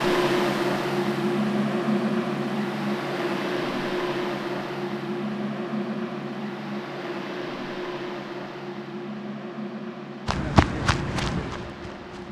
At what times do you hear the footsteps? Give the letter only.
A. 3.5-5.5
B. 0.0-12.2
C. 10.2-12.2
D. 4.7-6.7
C.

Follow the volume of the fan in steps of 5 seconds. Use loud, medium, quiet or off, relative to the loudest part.
loud, medium, quiet.